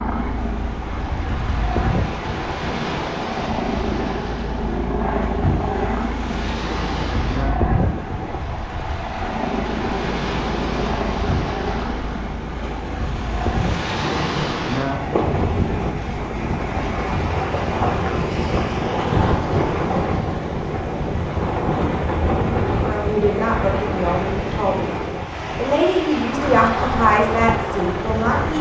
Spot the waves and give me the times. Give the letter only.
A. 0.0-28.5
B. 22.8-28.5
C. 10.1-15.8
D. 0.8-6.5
A.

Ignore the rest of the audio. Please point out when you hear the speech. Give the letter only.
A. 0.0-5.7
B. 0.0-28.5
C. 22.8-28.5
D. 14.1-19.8
C.